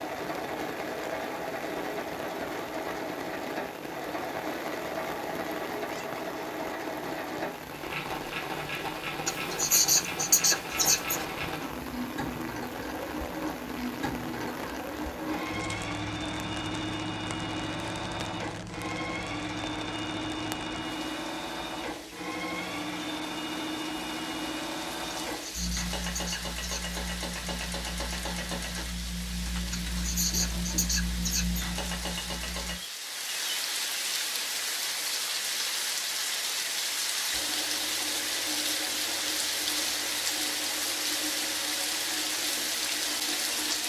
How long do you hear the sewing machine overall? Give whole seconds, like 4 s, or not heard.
39 s.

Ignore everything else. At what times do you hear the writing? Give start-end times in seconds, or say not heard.
9.2-11.2, 25.3-26.9, 29.7-31.6.